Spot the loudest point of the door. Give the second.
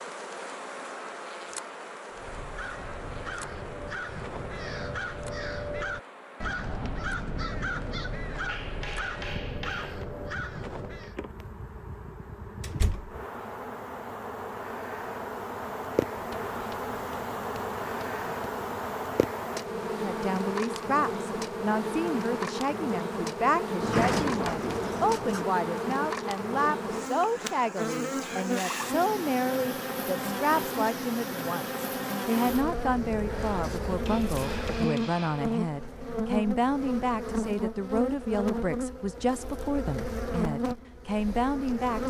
24 s.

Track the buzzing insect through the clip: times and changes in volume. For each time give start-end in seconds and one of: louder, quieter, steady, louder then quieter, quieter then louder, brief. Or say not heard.
0.0-42.0 louder.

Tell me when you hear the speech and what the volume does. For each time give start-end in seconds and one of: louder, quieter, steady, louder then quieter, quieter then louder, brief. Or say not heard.
20.0-42.0 steady.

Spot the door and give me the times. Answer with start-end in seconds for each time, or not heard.
12.6-13.2, 23.8-25.4.